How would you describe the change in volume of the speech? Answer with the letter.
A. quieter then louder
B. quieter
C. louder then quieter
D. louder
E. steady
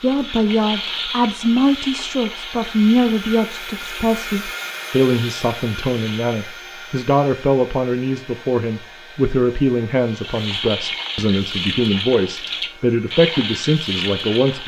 E.